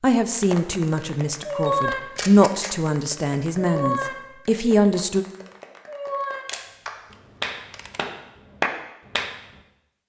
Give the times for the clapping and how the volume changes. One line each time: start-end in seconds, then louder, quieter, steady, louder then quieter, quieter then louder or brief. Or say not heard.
0.4-9.6 quieter then louder.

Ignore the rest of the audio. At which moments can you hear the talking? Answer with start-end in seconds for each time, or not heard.
0.0-5.2.